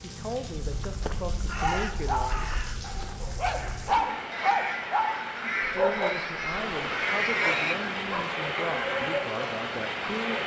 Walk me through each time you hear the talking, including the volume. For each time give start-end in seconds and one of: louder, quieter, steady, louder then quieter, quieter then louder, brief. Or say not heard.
0.0-2.5 brief
5.7-10.4 steady.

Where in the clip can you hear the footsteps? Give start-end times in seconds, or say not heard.
not heard.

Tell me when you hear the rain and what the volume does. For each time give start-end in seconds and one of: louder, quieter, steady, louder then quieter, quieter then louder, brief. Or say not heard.
0.0-10.4 louder.